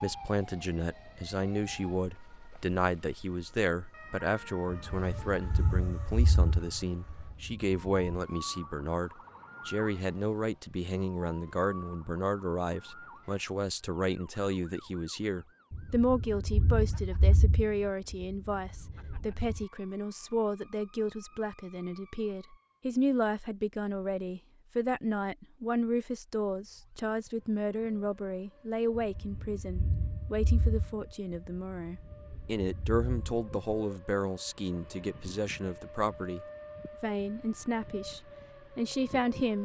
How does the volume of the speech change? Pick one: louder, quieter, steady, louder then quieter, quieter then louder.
steady.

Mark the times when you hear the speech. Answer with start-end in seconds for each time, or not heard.
0.0-39.6.